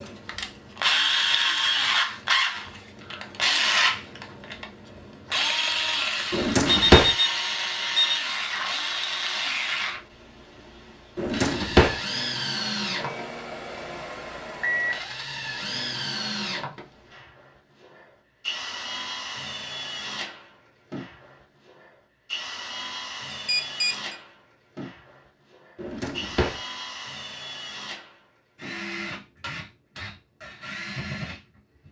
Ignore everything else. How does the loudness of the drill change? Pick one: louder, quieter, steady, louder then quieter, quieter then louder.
quieter.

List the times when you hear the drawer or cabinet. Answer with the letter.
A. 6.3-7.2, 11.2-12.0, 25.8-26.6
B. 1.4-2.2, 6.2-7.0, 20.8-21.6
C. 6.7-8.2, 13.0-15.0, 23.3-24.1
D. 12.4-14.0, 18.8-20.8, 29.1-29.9
A.